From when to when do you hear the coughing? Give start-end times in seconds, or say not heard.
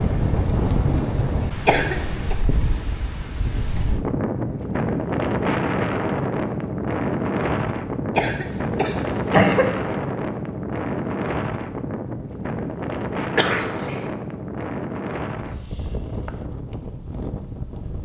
1.6-2.4, 8.2-9.9, 13.3-14.1.